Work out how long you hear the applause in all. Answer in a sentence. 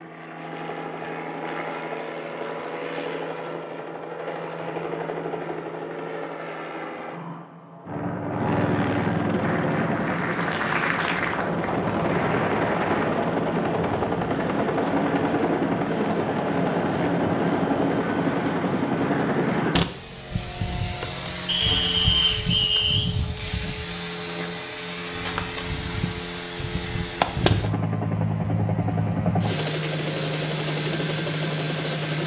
You can hear the applause for 4 seconds altogether.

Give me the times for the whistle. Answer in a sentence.
The whistle can be heard from 21.4 to 23.1 s.